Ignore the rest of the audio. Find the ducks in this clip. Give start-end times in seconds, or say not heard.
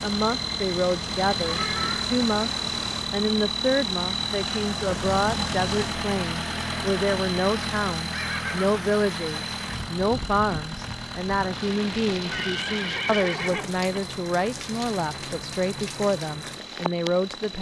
not heard.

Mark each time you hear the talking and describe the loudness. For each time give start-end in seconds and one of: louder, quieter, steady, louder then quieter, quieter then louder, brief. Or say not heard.
0.0-17.5 steady.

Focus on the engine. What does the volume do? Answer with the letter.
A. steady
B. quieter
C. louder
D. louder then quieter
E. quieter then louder
B.